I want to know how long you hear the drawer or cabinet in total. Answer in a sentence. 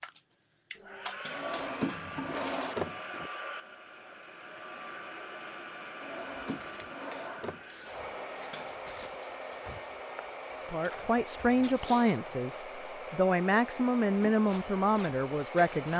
You can hear the drawer or cabinet for 4 seconds altogether.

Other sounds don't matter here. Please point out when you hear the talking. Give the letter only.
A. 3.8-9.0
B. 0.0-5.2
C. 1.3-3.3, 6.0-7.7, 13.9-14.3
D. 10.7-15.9
D.